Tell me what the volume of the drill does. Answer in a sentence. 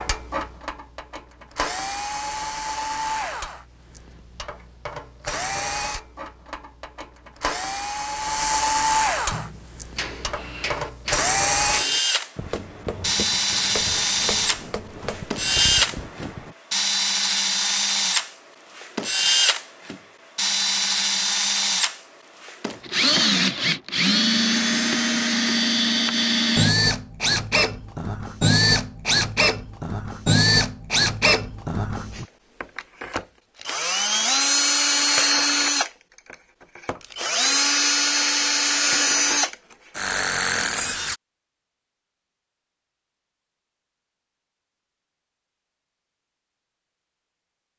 The volume of the drill goes up.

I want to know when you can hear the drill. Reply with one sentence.
You can hear the drill from 0.0 to 41.1 s.